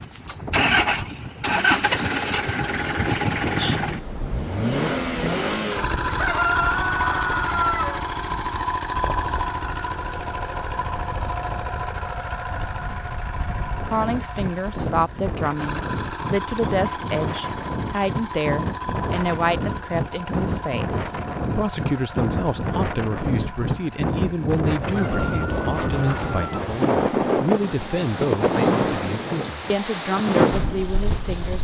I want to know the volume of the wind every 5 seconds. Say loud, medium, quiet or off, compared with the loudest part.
quiet, quiet, quiet, medium, loud, loud, loud.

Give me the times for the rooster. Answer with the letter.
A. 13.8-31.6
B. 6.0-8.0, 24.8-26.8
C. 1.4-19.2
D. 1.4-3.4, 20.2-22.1
B.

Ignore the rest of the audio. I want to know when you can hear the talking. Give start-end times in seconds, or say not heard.
13.8-31.6.